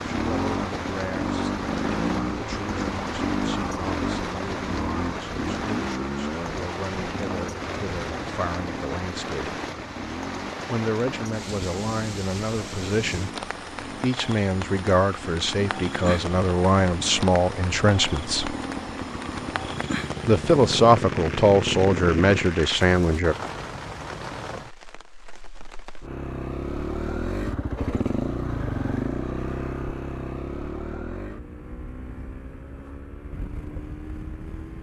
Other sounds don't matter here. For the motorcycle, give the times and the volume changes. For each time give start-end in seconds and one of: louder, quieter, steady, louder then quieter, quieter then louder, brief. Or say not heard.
0.0-22.5 quieter then louder
26.0-34.7 quieter.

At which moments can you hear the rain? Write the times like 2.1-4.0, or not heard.
0.0-26.1.